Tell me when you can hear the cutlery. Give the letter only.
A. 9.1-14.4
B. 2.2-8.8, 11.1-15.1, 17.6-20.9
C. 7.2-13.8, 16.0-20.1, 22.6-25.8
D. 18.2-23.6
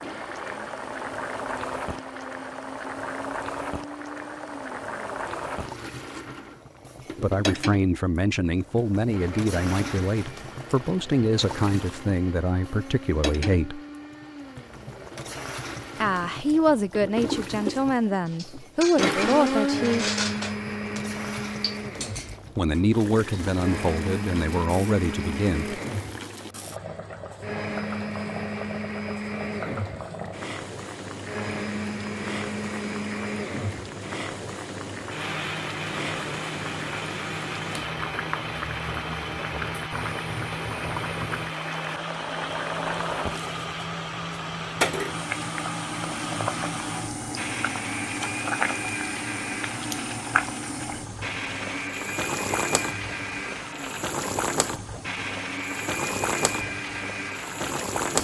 D.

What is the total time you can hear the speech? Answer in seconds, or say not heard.
14 s.